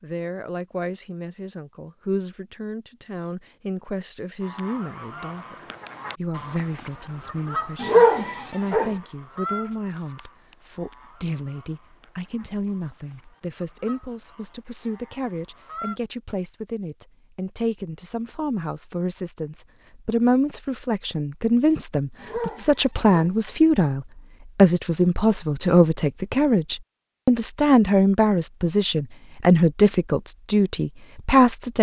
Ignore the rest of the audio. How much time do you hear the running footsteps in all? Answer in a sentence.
You can't hear the running footsteps here.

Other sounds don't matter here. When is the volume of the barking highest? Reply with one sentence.
The loudest moment of the barking is at 8 seconds.